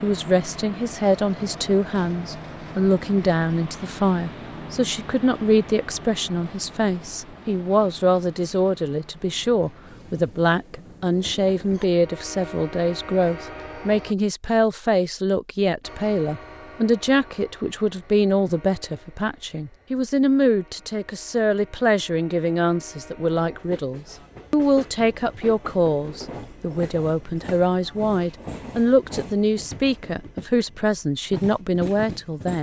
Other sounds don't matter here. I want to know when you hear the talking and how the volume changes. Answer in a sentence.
You can hear the talking from 0.0 to 32.5 s, at a steady volume.